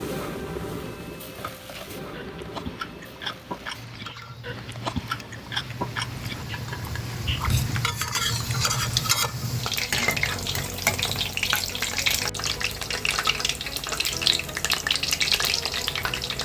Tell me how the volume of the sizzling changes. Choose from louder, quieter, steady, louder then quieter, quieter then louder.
louder.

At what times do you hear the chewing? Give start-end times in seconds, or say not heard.
1.7-9.1.